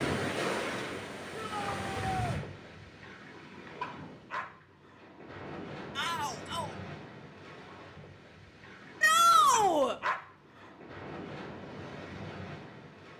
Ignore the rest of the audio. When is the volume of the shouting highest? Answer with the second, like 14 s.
9 s.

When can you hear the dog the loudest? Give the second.
10 s.